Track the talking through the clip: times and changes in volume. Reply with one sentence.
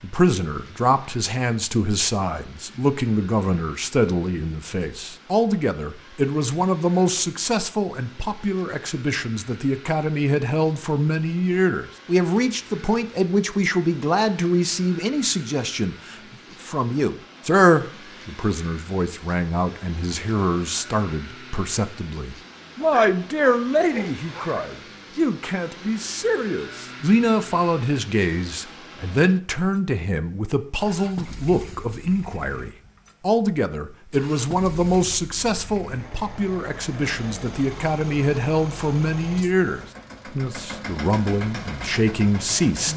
The talking can be heard from 0.0 to 42.9 s, at a steady volume.